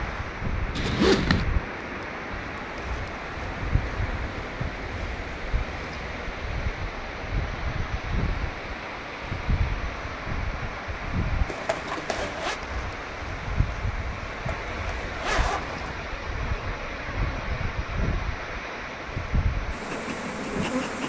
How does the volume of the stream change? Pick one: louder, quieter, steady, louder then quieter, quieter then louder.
steady.